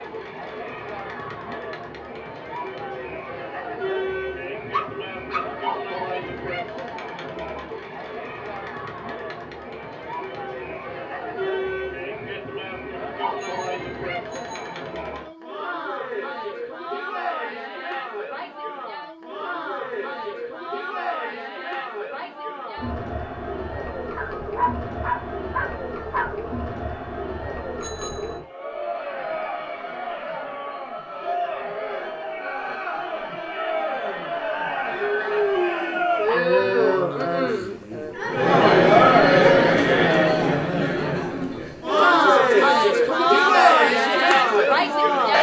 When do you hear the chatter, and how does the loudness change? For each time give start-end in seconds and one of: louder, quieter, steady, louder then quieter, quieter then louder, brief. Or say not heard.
0.0-45.3 louder.